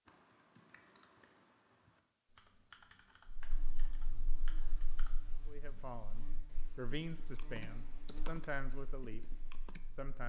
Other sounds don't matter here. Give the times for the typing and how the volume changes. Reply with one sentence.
The typing can be heard from 0.1 to 9.8 s, getting louder.